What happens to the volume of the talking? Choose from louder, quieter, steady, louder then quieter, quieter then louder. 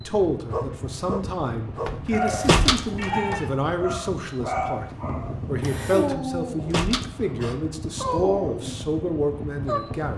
steady.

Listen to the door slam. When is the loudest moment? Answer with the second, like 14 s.
3 s.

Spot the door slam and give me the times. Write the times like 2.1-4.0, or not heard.
1.9-3.4, 6.1-7.0.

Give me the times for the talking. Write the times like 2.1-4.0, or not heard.
0.1-10.1.